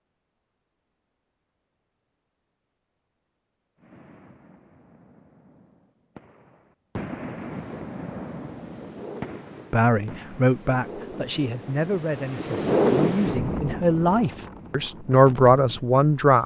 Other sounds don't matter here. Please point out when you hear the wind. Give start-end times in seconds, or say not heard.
7.3-16.4.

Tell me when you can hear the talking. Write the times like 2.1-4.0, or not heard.
9.7-16.4.